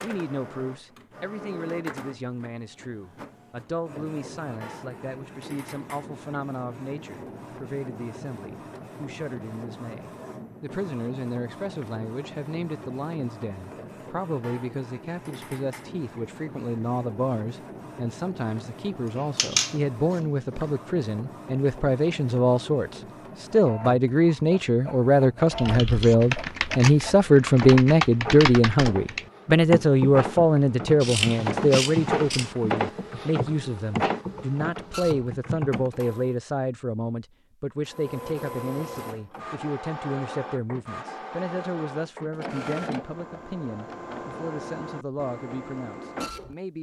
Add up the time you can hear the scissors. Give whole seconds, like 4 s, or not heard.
3 s.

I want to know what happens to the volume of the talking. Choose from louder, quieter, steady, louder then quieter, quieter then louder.
louder then quieter.